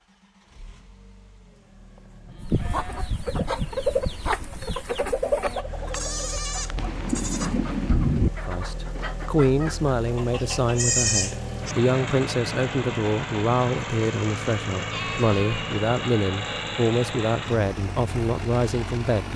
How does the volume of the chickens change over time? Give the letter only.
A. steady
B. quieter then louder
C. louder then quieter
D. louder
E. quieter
E.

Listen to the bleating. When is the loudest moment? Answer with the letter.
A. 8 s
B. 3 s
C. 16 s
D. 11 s
D.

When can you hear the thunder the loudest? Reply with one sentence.
The volume of the thunder peaks at 8 seconds.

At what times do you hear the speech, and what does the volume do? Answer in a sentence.
The speech can be heard from 8.4 to 19.3 s, at a steady volume.